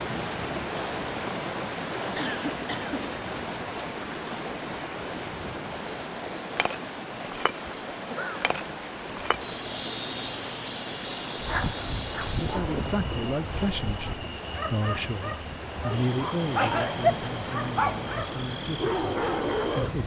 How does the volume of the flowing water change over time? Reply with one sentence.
The loudness of the flowing water goes down.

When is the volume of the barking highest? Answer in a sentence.
The loudest moment of the barking is at 17 seconds.